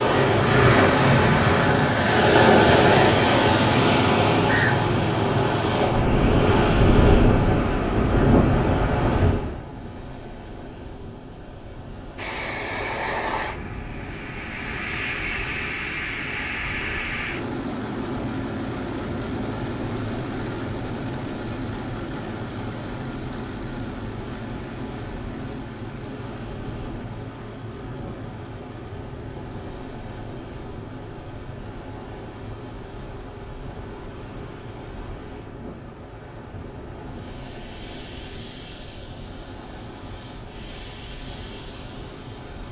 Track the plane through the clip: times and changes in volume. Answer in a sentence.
You can hear the plane from 12.2 to 42.6 s, getting quieter.